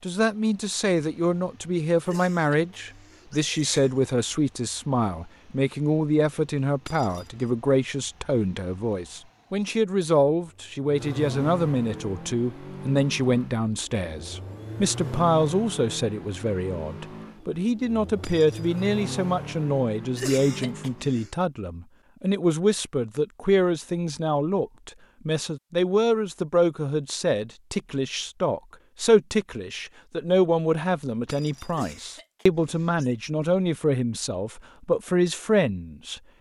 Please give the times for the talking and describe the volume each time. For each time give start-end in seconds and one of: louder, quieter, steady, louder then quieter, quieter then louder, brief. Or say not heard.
0.0-36.2 steady.